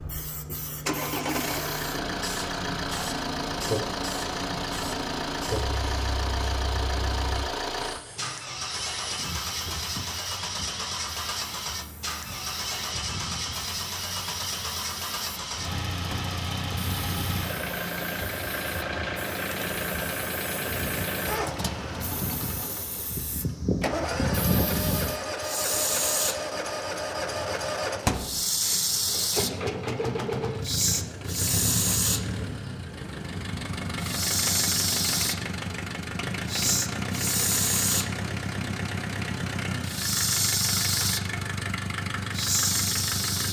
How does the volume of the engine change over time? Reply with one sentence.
The loudness of the engine stays about the same.